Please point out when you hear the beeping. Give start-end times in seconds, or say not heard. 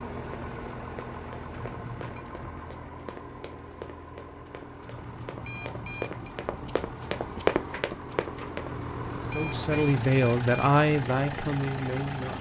1.6-2.2, 4.8-6.3, 8.8-10.7.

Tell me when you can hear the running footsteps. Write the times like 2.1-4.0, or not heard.
0.5-8.7.